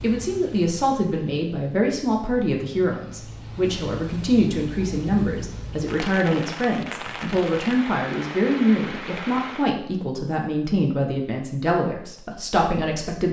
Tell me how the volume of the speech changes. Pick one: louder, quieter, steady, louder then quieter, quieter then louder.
steady.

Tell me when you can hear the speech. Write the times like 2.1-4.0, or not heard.
0.0-13.2.